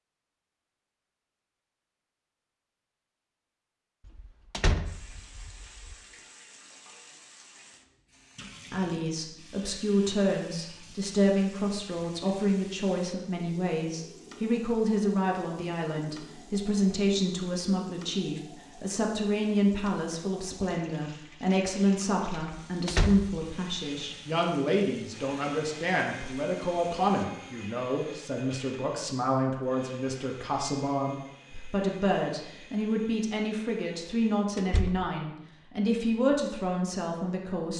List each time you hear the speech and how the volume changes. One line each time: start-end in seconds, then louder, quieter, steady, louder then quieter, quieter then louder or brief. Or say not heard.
8.7-37.7 steady.